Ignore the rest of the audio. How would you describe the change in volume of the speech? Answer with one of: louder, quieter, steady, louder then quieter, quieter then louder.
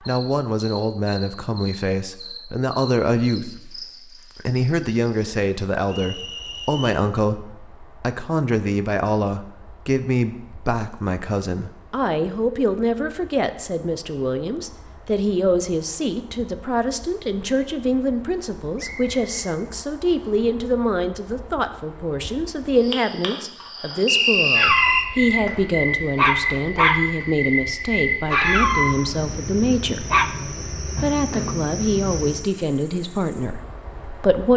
steady.